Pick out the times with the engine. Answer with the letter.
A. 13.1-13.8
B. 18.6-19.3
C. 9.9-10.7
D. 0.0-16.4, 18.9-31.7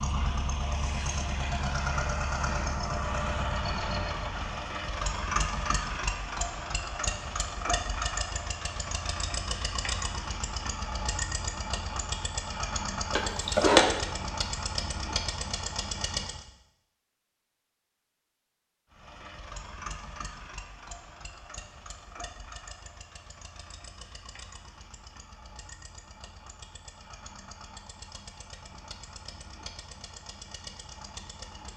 D.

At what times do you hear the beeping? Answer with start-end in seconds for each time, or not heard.
13.1-13.8.